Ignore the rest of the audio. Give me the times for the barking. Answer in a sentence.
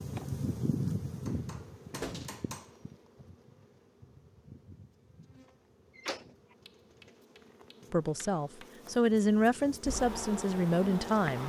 The barking can't be heard in this clip.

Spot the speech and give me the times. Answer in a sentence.
The speech can be heard from 7.9 to 11.4 s.